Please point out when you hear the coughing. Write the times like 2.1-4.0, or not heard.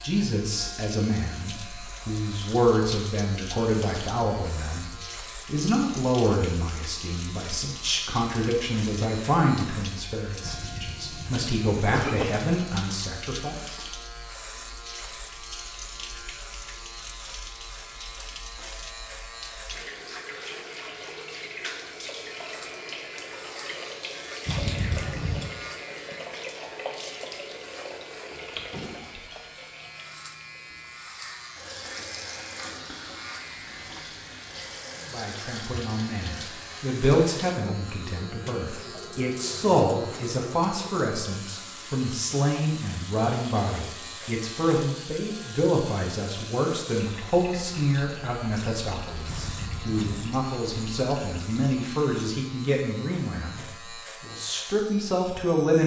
10.4-12.2, 24.4-25.5, 49.2-50.4.